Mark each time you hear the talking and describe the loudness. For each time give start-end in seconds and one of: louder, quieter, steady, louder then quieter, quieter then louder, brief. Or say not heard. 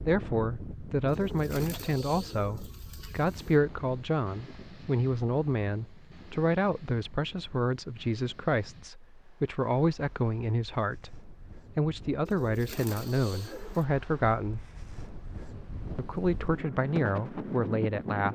0.1-14.6 steady
15.9-18.3 brief.